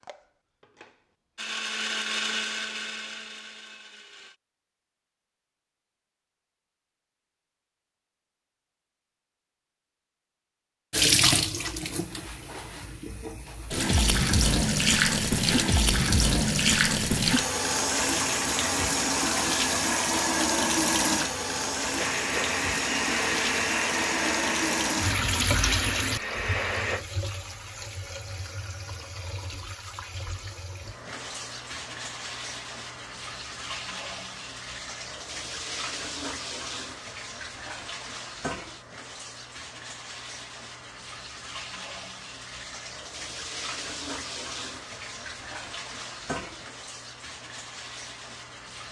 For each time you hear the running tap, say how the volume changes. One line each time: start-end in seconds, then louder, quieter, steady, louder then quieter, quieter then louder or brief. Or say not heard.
10.9-48.8 quieter.